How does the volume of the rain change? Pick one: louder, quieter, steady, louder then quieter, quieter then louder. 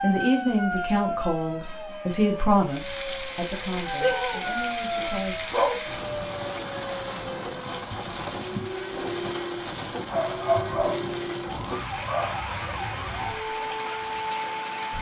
steady.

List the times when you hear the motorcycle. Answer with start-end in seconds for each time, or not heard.
not heard.